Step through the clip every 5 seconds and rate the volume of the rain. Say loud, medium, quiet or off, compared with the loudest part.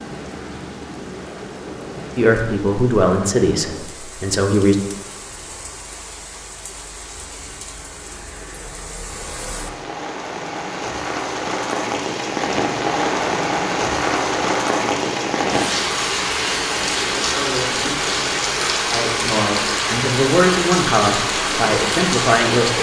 quiet, quiet, loud, loud, loud.